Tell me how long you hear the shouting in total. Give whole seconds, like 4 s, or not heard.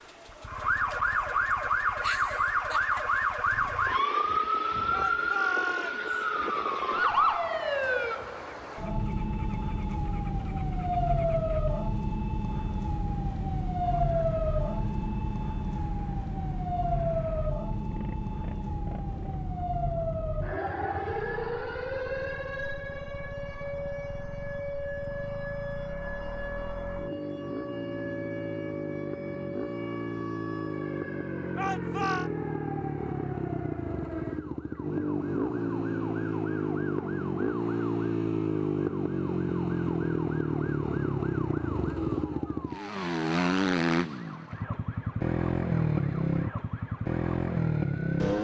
2 s.